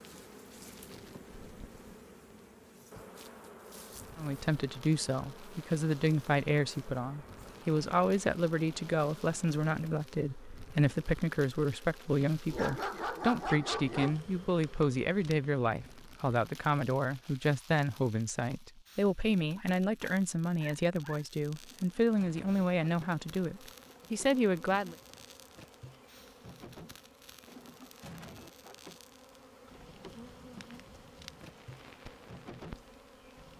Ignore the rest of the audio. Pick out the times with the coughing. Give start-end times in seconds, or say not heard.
not heard.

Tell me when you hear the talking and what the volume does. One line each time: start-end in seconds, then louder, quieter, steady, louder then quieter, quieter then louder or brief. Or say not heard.
4.2-24.9 steady.